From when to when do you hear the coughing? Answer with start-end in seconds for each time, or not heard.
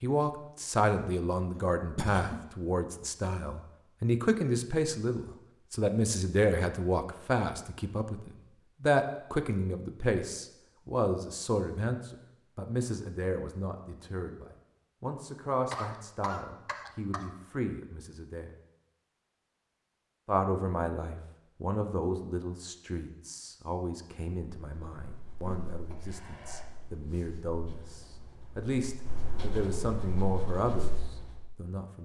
1.6-2.4, 15.7-17.2, 25.4-26.6.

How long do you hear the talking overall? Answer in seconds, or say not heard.
30 s.